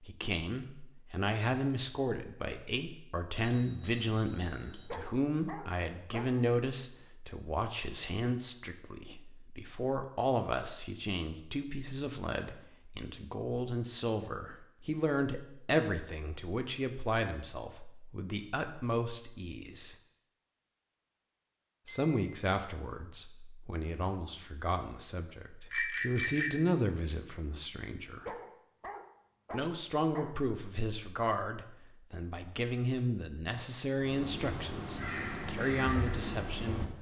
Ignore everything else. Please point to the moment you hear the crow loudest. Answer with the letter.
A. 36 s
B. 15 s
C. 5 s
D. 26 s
A.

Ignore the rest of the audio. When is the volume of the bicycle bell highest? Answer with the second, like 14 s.
26 s.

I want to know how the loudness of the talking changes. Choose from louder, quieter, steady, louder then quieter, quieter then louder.
steady.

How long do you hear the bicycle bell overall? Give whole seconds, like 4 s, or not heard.
3 s.